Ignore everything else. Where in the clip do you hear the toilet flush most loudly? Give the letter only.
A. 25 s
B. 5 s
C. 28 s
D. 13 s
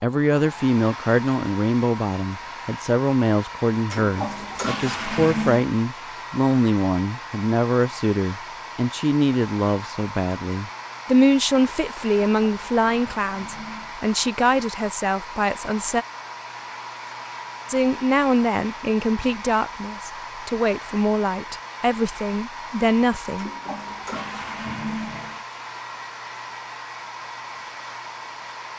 B.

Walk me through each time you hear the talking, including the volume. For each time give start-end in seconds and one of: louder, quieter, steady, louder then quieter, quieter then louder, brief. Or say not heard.
0.0-16.1 steady
17.6-23.5 steady.